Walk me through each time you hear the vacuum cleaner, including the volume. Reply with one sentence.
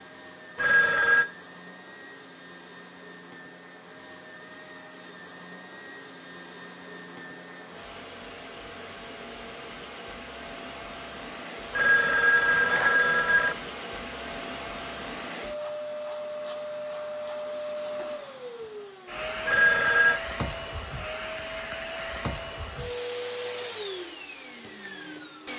The vacuum cleaner can be heard from 0.0 to 25.5 s, getting louder.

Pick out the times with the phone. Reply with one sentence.
The phone can be heard from 0.6 to 1.2 s, from 11.7 to 13.6 s and from 19.4 to 20.2 s.